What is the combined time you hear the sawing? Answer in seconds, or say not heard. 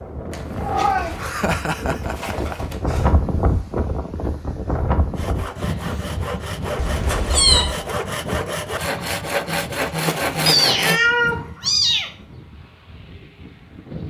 6 s.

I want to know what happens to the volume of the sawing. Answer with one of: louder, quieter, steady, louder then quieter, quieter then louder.
louder.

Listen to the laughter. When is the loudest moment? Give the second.
2 s.